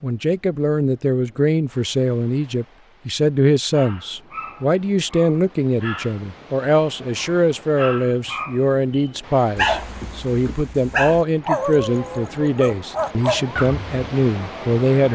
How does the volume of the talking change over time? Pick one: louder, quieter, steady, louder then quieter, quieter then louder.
steady.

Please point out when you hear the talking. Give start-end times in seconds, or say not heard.
0.0-15.1.